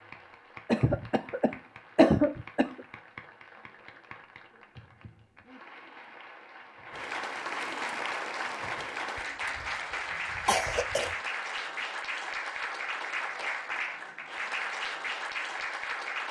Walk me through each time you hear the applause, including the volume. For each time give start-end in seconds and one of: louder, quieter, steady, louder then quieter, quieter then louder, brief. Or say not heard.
0.0-16.2 louder.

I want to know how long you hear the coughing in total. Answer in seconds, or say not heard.
4 s.